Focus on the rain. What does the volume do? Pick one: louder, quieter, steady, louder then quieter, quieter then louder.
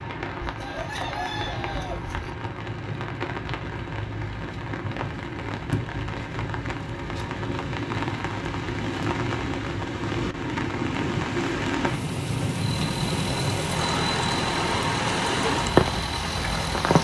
louder.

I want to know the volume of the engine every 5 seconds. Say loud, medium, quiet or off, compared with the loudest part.
off, off, loud, loud.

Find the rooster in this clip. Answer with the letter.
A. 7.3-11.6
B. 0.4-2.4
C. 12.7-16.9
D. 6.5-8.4
B.